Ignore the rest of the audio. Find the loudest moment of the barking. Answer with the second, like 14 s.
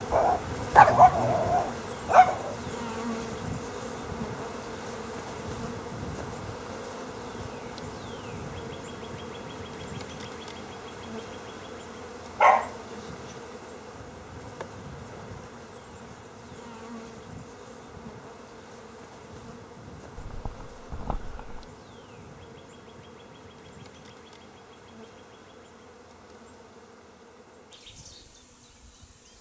1 s.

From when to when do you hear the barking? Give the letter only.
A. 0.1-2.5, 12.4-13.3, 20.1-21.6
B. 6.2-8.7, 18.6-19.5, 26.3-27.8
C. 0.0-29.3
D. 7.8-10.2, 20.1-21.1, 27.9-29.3
A.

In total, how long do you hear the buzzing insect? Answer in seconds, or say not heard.
29 s.